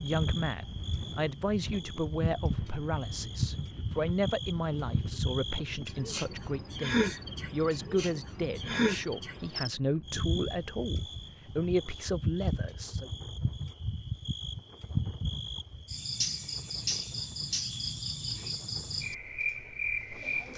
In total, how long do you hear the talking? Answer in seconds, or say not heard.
13 s.